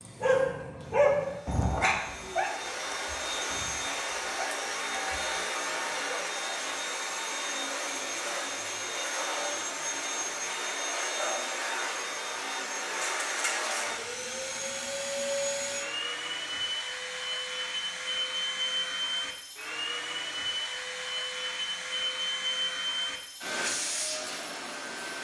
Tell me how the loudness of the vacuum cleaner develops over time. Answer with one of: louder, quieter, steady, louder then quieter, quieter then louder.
steady.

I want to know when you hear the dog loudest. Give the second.
1 s.